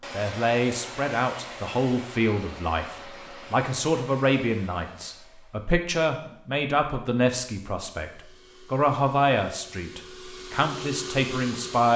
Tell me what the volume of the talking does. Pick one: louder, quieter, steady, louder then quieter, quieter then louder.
steady.